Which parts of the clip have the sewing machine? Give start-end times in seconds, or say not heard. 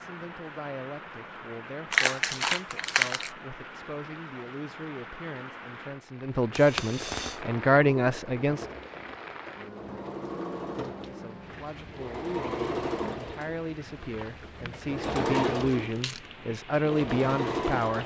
7.3-18.0.